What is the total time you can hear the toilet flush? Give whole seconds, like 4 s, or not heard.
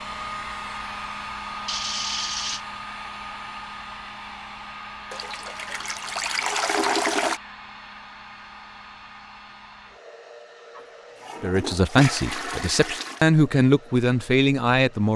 6 s.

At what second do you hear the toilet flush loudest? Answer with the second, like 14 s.
7 s.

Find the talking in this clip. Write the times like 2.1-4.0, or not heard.
11.4-15.1.